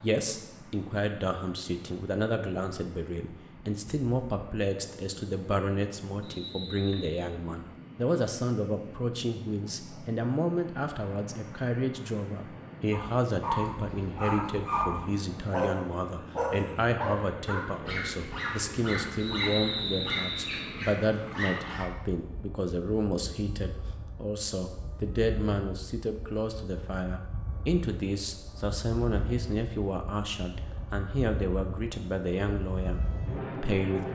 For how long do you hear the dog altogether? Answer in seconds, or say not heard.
9 s.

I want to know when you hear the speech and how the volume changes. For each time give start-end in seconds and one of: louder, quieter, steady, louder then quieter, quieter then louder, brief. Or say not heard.
0.0-34.1 steady.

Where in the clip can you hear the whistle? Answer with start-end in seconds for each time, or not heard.
6.2-7.2, 19.2-20.7.